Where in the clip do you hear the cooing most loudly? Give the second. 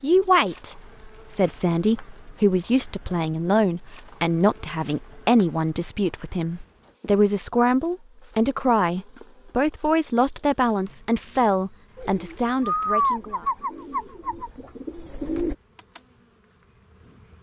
13 s.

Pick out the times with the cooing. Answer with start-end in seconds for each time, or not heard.
11.9-15.6.